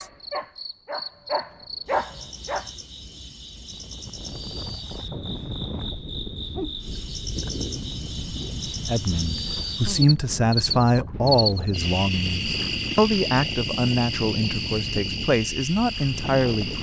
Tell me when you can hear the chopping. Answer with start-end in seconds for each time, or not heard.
not heard.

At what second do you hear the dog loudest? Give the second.
2 s.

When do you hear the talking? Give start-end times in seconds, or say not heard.
8.8-16.7.